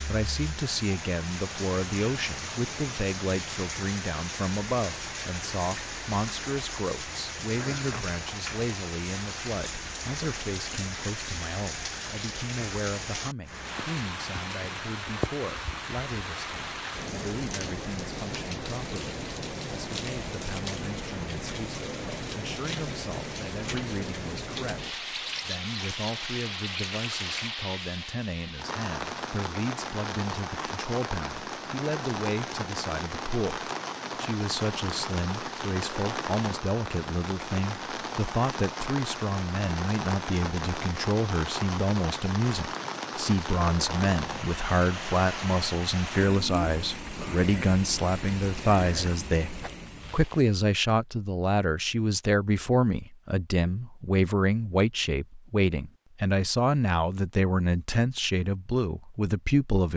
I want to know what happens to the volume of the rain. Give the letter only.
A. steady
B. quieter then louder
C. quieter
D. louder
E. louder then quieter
A.